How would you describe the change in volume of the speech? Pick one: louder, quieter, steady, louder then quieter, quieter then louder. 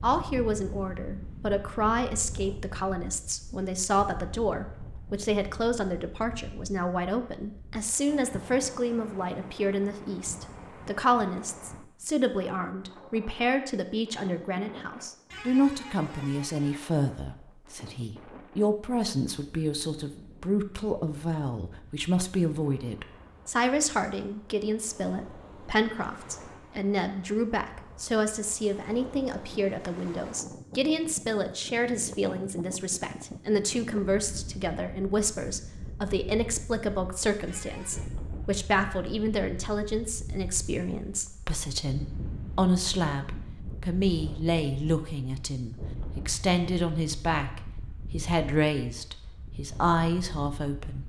steady.